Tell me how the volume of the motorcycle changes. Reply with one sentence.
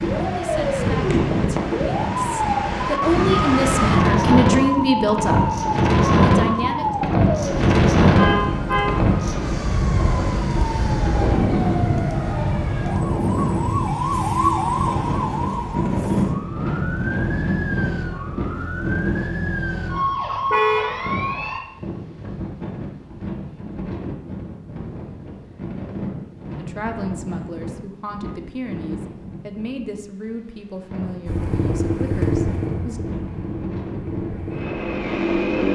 The loudness of the motorcycle goes down, then up.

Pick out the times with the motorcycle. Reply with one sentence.
The motorcycle can be heard from 31.2 to 35.7 s.